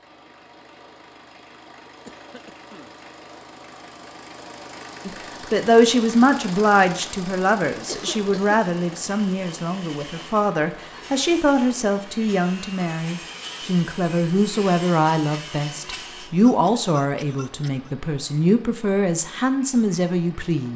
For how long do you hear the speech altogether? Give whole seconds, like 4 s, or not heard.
16 s.